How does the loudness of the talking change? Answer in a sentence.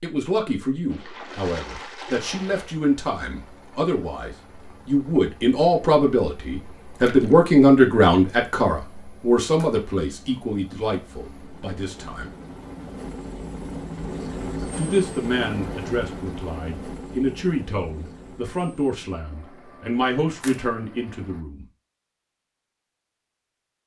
The loudness of the talking goes up, then down.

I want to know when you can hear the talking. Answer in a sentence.
You can hear the talking from 0.0 to 12.3 s and from 14.8 to 21.6 s.